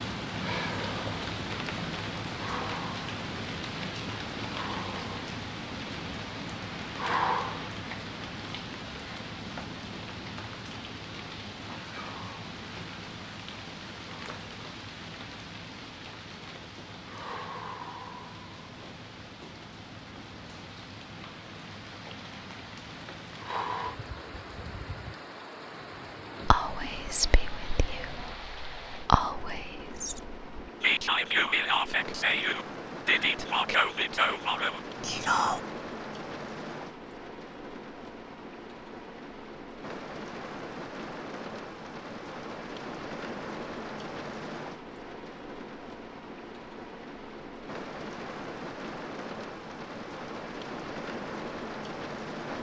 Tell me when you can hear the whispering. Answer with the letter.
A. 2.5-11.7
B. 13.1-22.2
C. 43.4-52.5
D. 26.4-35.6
D.